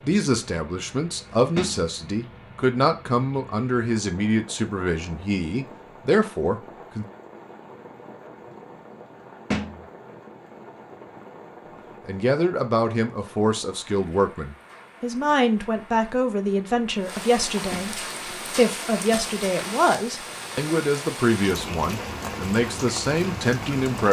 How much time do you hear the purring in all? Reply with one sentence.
The purring can't be heard in this clip.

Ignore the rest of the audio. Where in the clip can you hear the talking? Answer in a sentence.
The talking can be heard from 0.0 to 7.0 s and from 12.1 to 24.0 s.